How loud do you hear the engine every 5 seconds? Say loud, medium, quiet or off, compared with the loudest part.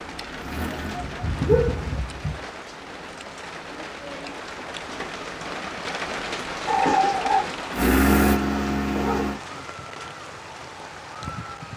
quiet, loud, off.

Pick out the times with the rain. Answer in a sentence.
You can hear the rain from 0.0 to 11.7 s.